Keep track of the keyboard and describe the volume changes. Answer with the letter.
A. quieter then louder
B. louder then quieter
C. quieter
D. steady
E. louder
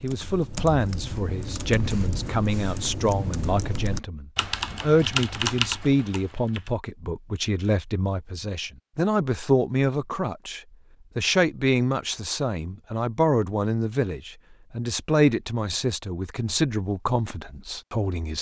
E.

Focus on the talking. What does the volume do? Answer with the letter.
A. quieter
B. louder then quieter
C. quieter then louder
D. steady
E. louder
D.